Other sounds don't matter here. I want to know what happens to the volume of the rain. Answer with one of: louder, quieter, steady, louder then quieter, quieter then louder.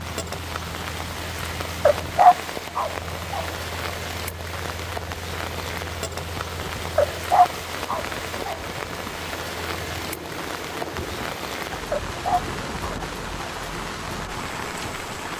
steady.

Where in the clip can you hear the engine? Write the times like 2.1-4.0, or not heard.
0.0-15.3.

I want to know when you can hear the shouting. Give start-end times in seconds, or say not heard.
not heard.